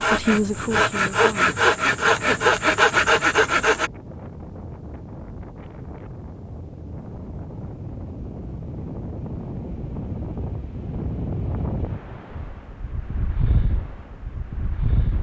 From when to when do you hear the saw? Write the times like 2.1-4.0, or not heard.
0.0-3.9.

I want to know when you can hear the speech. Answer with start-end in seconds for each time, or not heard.
0.0-1.6.